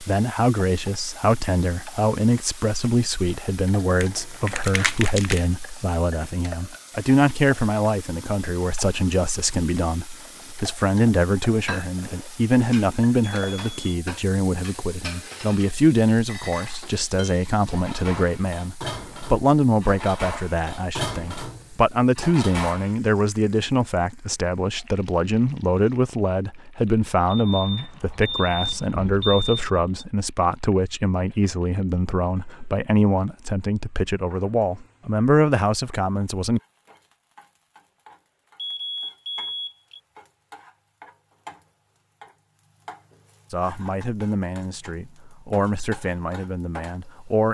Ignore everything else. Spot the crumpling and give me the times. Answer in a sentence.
You can hear the crumpling from 4.0 to 5.5 s.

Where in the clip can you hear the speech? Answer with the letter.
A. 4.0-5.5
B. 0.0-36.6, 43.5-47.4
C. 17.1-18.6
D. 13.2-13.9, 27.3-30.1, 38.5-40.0
B.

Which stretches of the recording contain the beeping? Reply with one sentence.
The beeping can be heard from 13.2 to 13.9 s, from 27.3 to 30.1 s and from 38.5 to 40.0 s.